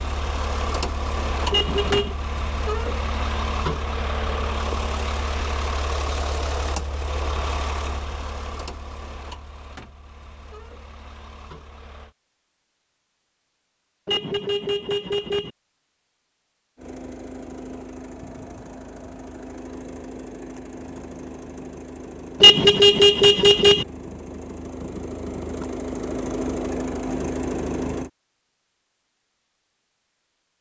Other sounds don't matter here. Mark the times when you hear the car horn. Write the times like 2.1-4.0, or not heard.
1.5-2.1, 14.1-15.5, 22.4-23.9.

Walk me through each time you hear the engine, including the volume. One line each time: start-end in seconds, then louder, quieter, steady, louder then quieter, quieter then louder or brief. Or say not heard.
0.0-12.2 quieter
16.8-28.1 louder.